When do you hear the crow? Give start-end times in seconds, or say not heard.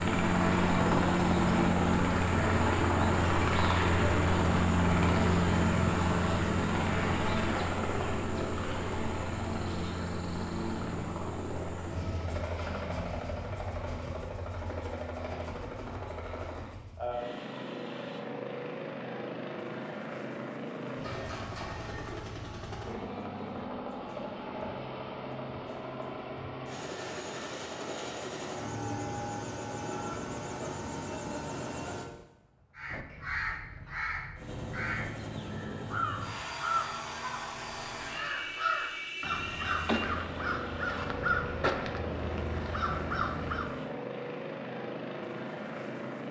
32.8-43.7.